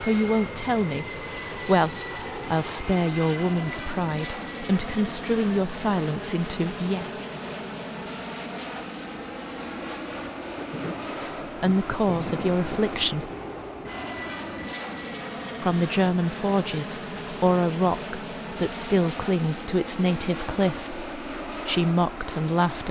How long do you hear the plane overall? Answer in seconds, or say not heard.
23 s.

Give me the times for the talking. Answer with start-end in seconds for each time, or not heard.
0.0-7.2, 11.1-13.3, 15.6-22.8.